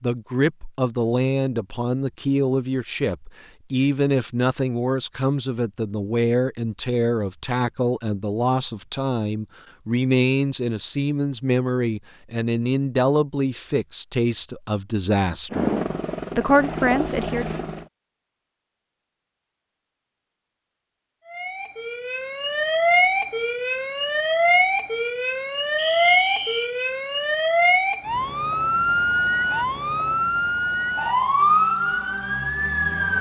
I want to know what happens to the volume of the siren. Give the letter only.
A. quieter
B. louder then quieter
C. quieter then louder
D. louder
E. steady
E.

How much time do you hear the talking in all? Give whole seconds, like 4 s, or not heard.
17 s.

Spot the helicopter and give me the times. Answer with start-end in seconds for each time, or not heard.
15.5-17.9.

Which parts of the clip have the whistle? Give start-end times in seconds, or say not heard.
25.8-26.8.